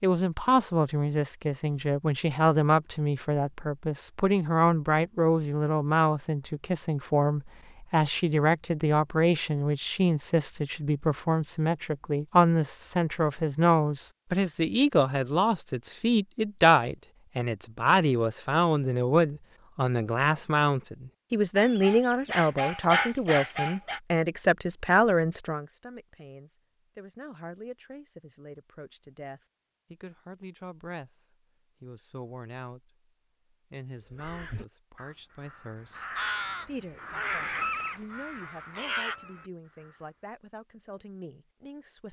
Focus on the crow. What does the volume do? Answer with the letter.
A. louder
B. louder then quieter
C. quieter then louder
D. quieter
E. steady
A.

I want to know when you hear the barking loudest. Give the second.
23 s.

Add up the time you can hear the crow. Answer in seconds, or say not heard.
6 s.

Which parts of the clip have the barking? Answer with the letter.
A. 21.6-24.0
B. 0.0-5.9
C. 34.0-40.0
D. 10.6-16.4
A.